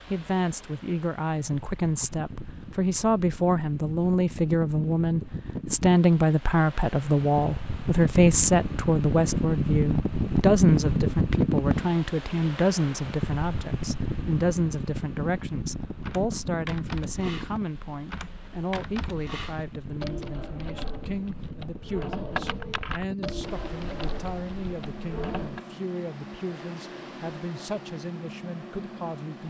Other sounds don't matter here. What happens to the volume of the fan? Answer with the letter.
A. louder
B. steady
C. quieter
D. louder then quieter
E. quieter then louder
D.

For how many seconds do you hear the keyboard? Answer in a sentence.
The keyboard can be heard for 10 seconds in total.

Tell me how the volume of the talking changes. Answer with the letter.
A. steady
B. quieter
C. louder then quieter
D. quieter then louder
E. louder
B.